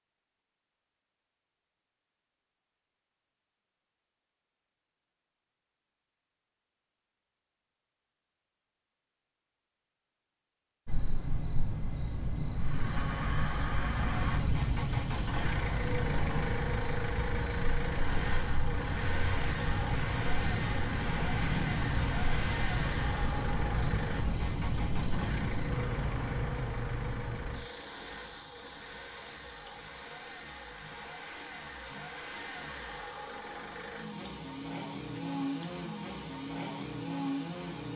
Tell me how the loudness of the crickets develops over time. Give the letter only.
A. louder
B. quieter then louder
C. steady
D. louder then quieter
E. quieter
E.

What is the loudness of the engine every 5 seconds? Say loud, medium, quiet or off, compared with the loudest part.
off, off, loud, loud, loud, medium, medium, loud.